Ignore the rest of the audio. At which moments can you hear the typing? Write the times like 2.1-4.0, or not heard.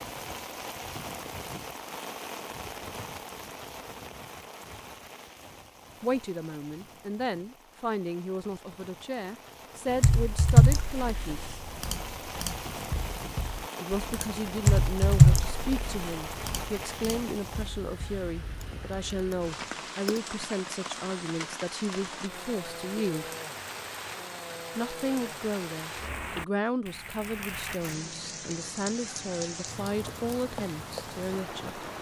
9.9-20.2.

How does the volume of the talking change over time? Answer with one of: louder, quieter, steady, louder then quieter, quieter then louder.
steady.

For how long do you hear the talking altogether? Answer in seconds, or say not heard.
22 s.